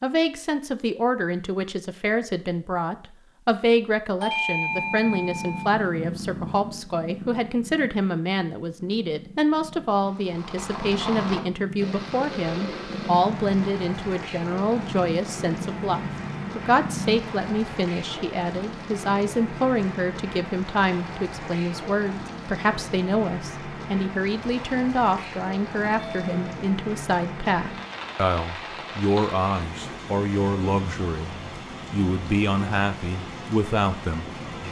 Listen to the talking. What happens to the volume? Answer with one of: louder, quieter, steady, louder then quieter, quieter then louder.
steady.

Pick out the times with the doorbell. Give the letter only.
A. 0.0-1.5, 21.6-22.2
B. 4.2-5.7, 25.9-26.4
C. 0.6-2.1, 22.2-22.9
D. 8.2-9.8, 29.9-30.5
B.